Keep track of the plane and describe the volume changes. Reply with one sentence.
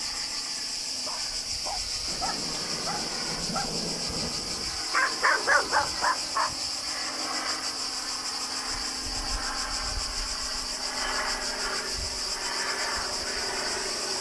The volume of the plane goes up.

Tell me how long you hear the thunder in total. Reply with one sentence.
You can hear the thunder for 3 seconds altogether.